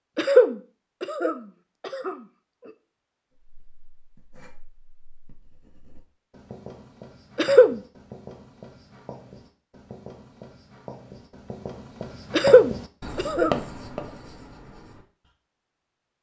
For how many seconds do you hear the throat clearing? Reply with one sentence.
The throat clearing can be heard for 4 seconds in total.